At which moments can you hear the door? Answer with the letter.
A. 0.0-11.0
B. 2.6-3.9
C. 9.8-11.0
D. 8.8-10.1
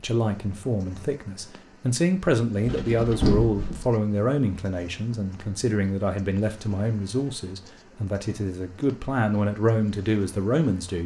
B.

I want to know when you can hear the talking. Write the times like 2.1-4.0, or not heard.
0.0-11.0.